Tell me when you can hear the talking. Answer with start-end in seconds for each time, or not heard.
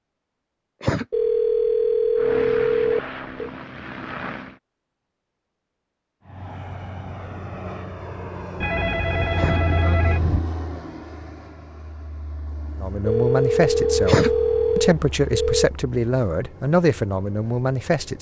12.8-18.1.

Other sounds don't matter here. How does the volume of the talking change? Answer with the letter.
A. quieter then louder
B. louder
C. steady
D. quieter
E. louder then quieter
C.